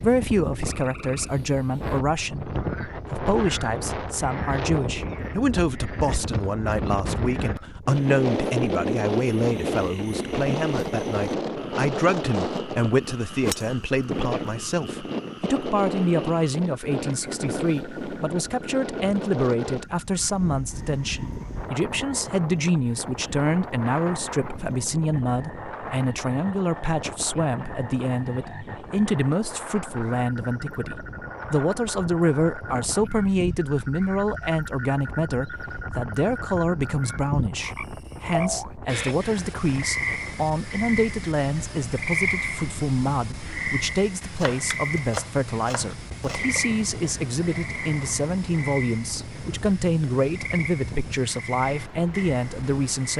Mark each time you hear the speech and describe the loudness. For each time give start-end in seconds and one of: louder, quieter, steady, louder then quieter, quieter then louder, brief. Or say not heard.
0.0-53.1 steady.